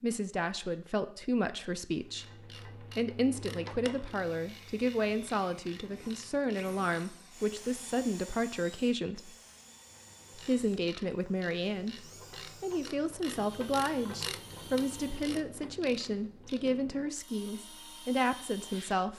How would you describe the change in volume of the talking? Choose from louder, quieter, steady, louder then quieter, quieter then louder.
steady.